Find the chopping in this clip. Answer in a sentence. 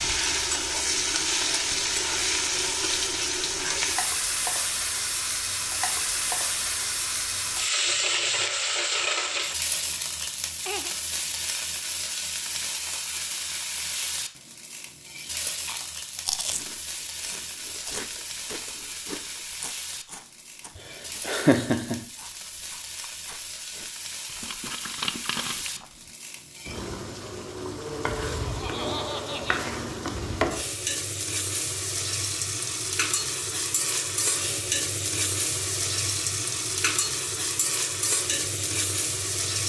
The chopping can't be heard in this clip.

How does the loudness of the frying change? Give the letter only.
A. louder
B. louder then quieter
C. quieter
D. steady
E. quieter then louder
E.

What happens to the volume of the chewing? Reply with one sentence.
The volume of the chewing goes down, then up.